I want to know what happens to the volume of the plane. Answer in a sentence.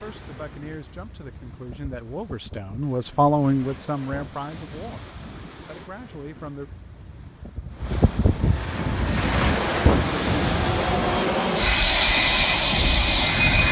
The volume of the plane goes up.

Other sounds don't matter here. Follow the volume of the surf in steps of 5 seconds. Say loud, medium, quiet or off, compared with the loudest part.
quiet, loud, loud.